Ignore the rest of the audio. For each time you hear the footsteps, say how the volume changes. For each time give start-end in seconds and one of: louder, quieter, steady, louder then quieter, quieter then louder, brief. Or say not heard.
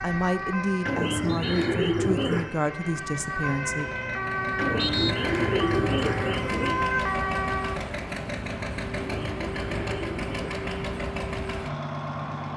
not heard.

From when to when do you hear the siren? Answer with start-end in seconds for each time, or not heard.
0.0-7.8.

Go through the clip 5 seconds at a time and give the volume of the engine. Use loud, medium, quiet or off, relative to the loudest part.
medium, loud, loud.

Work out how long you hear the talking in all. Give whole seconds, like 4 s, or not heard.
4 s.